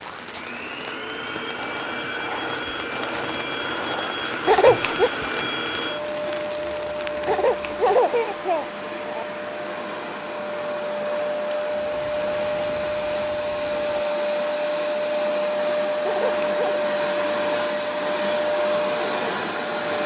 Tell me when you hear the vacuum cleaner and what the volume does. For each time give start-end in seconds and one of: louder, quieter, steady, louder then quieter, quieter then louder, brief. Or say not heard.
0.0-20.0 louder.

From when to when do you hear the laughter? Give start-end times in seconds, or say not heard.
4.5-5.1, 7.2-9.2, 16.0-16.8.